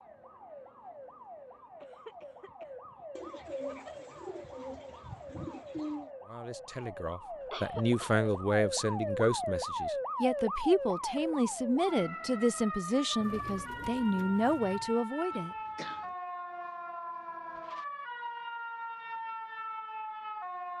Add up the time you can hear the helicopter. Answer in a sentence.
The helicopter can't be heard in this clip.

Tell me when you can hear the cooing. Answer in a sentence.
The cooing can be heard from 3.1 to 6.1 s and from 13.2 to 15.0 s.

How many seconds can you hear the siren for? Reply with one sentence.
The siren can be heard for 21 seconds in total.